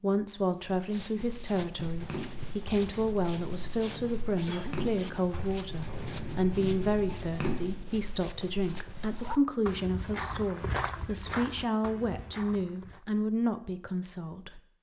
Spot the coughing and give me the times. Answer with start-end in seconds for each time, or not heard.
4.5-5.2.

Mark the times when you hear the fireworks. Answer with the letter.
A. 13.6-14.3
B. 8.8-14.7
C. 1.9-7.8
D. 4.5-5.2
C.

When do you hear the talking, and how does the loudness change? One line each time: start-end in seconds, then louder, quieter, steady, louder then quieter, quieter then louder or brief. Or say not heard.
0.0-14.6 steady.